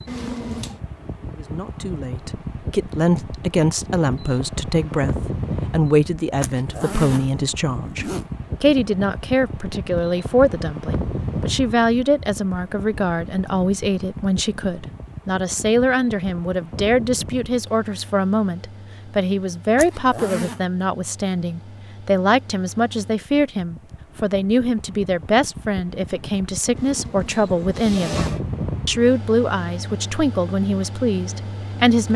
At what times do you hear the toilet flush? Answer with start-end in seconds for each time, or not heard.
0.1-0.8, 26.8-28.4.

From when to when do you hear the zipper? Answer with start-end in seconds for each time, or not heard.
6.4-8.2, 19.8-20.6.